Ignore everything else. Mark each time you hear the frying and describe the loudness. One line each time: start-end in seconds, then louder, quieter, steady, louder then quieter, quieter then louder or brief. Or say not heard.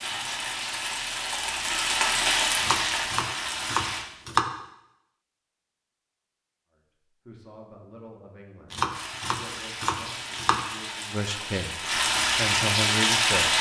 0.0-4.0 louder then quieter
8.8-13.5 louder.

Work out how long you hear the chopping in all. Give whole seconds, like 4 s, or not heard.
4 s.